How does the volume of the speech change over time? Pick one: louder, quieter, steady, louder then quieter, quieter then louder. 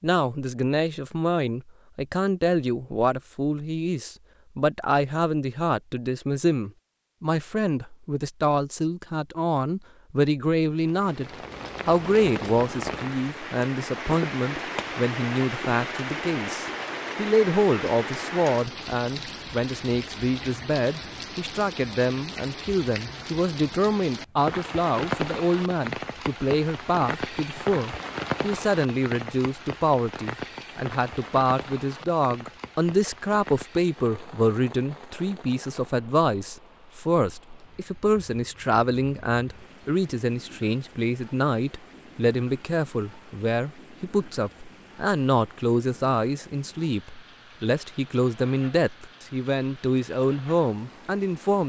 steady.